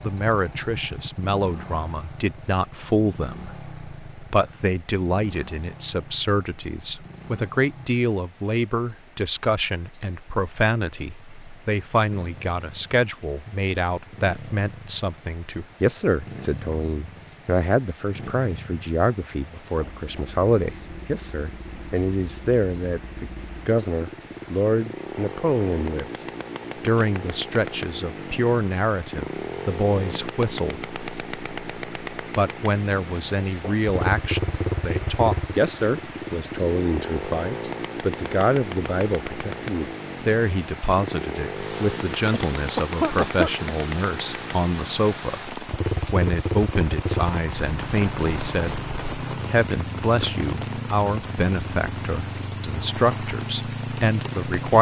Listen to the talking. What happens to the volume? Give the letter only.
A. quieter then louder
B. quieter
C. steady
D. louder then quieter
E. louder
C.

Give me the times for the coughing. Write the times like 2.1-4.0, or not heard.
42.3-43.7.